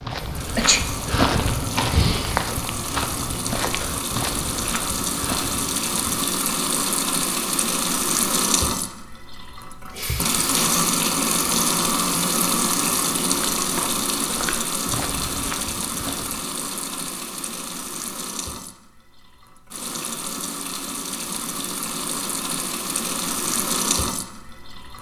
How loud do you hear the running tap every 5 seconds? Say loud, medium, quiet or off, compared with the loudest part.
medium, loud, loud, medium, medium.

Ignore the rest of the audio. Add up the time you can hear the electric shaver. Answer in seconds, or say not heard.
not heard.